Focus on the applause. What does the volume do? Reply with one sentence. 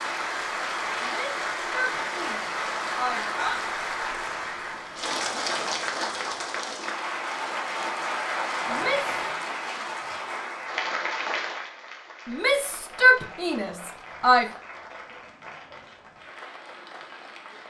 The loudness of the applause goes down.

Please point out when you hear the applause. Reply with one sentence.
The applause can be heard from 0.0 to 17.6 s.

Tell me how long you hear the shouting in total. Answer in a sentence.
The shouting can be heard for 5 seconds in total.